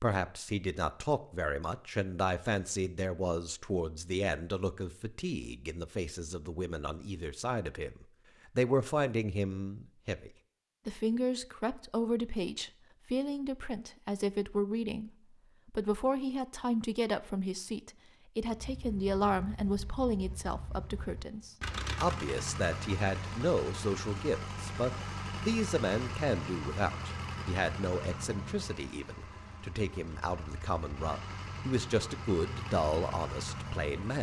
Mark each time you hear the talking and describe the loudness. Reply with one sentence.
The talking can be heard from 0.0 to 34.1 s, at a steady volume.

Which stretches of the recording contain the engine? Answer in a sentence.
You can hear the engine from 18.4 to 34.1 s.